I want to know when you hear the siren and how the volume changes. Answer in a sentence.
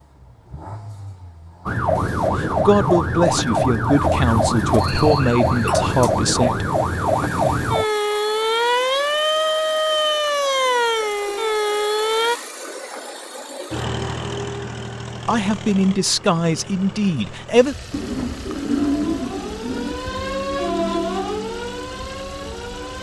The siren can be heard from 1.6 to 12.3 s, at a steady volume; and from 18.8 to 22.9 s, getting louder then quieter.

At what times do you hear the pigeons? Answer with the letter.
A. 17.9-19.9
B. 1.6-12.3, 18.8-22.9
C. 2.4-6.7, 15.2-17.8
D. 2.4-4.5
A.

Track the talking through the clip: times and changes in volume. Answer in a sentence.
The talking can be heard from 2.4 to 6.7 s, at a steady volume; and briefly from 15.2 to 17.8 s.